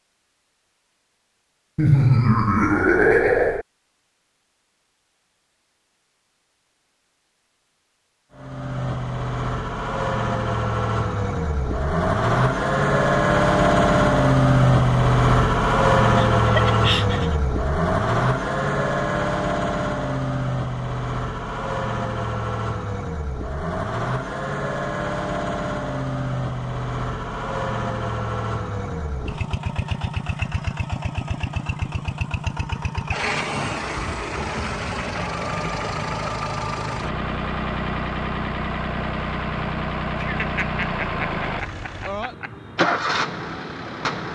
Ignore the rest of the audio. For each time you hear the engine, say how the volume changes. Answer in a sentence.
You can hear the engine from 8.3 to 44.2 s, getting quieter.